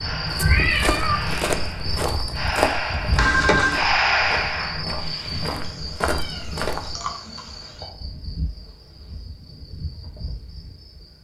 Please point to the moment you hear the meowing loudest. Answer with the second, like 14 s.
1 s.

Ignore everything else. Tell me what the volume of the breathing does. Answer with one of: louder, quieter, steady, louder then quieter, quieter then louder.
louder then quieter.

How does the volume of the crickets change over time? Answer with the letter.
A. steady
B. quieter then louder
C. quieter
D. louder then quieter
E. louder
C.